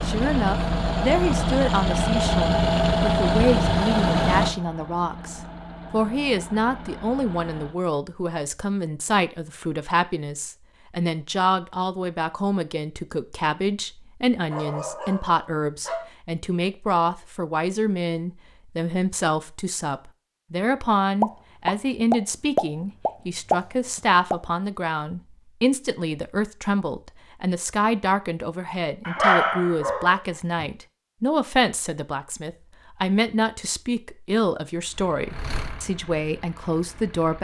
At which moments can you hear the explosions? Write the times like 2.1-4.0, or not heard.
21.2-24.4.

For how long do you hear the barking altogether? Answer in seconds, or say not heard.
3 s.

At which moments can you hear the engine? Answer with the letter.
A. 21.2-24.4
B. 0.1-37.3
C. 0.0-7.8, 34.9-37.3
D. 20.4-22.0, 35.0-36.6
C.